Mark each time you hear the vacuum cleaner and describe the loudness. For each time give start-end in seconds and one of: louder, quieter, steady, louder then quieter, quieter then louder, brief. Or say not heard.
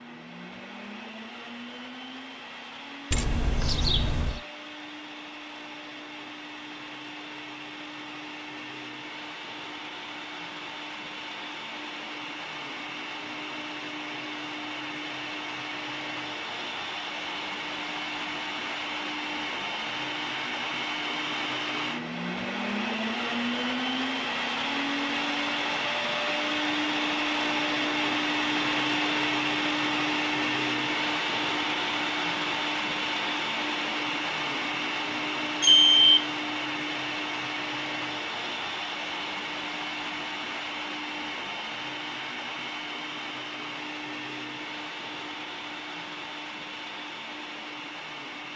0.0-48.5 louder then quieter.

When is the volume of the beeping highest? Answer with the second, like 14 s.
36 s.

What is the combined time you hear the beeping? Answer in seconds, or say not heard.
2 s.